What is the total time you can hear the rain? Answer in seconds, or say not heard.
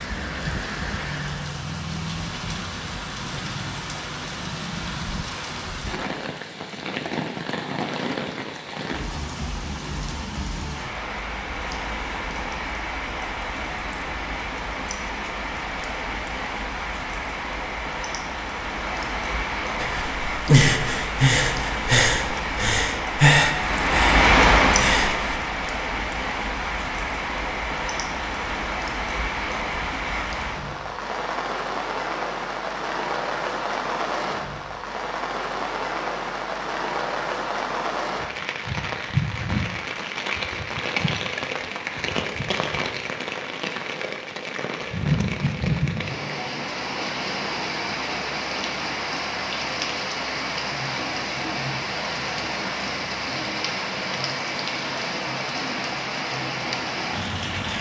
58 s.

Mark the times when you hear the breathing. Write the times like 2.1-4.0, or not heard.
19.8-25.4.